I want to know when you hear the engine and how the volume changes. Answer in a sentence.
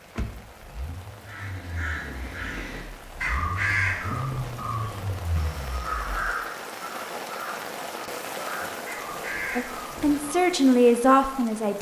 The engine can be heard from 0.0 to 6.3 s, getting louder then quieter.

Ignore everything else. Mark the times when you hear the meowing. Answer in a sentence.
The meowing can't be heard in this clip.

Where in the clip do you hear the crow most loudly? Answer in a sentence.
The loudest moment of the crow is at 4 seconds.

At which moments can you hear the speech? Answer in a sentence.
The speech can be heard from 9.6 to 11.7 s.